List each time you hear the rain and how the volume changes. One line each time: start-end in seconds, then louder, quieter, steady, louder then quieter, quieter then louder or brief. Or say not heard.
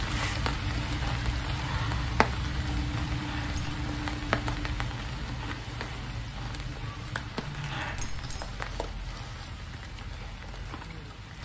0.0-11.4 quieter.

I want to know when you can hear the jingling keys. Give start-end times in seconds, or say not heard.
3.1-3.7, 7.4-8.4.